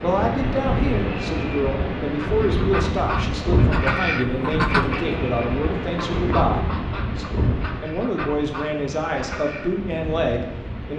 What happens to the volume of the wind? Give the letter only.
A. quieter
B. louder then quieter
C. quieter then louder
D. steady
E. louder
A.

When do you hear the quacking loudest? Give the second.
5 s.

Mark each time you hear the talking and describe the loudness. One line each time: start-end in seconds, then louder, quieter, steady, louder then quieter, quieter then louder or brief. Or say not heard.
0.0-10.9 steady.